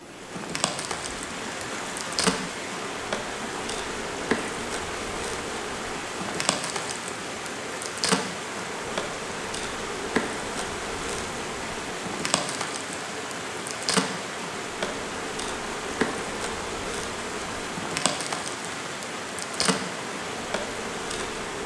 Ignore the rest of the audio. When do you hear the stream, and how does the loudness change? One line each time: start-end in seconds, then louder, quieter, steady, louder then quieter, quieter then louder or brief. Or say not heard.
0.0-21.6 steady.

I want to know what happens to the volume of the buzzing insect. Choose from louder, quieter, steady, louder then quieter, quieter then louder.
steady.